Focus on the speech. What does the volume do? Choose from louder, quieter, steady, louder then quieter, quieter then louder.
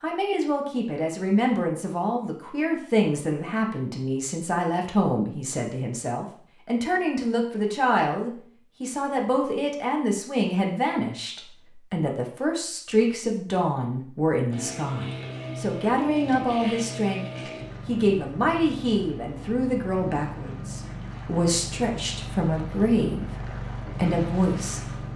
steady.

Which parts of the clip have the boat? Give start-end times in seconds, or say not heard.
14.5-25.1.